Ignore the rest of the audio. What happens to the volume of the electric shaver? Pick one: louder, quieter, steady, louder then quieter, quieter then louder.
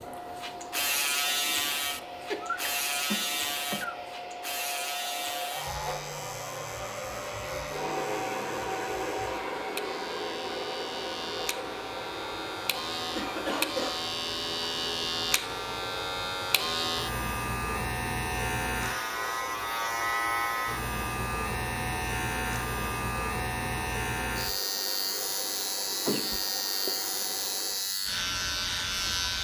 quieter then louder.